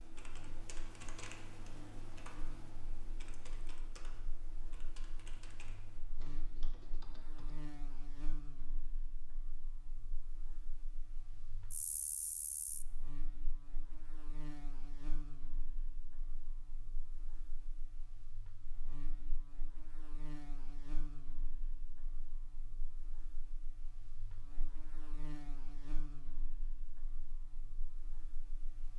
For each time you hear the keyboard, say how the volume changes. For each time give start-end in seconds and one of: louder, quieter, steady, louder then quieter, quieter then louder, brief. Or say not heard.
0.0-7.7 quieter.